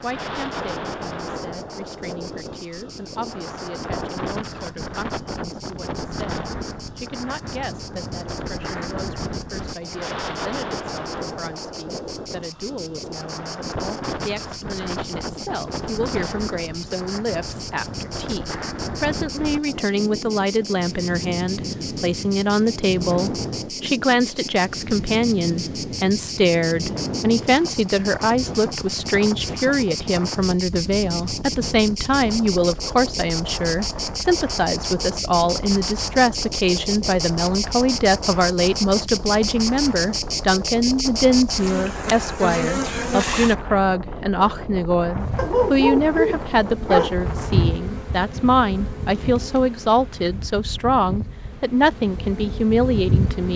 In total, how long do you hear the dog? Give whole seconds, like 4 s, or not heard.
2 s.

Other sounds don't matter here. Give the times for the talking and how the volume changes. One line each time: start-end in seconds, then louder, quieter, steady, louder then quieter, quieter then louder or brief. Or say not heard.
0.0-53.5 louder.